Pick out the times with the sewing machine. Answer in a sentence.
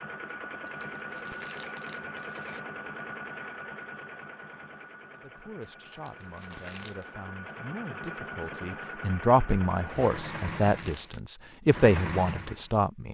You can hear the sewing machine from 0.0 to 12.8 s.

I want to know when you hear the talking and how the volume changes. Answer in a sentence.
You can hear the talking from 5.1 to 13.0 s, getting louder.